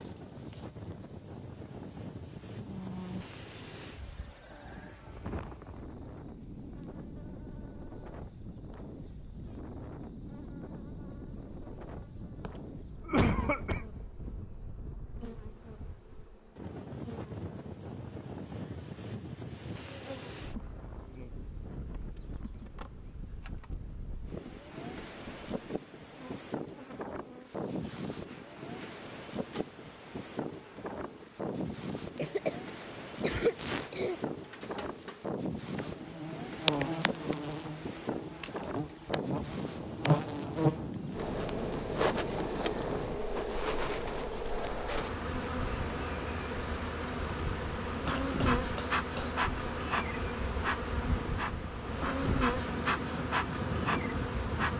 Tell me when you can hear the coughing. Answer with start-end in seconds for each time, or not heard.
13.1-13.8, 32.1-32.6, 33.2-34.1, 48.0-49.4.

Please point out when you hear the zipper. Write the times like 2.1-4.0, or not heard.
not heard.